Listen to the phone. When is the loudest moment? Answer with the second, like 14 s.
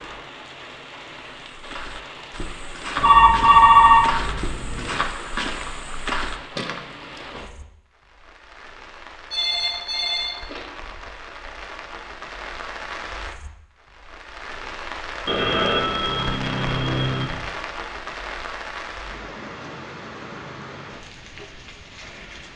4 s.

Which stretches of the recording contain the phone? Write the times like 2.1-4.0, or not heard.
3.0-5.0, 9.3-10.8, 15.2-17.3.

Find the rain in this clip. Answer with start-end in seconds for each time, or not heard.
0.0-22.5.